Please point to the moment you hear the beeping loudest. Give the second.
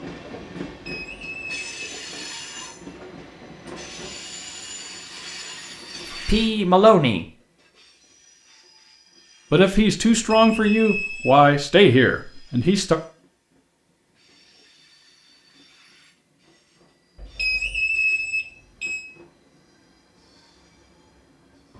18 s.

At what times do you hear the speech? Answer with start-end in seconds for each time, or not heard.
6.2-7.2, 9.5-13.0.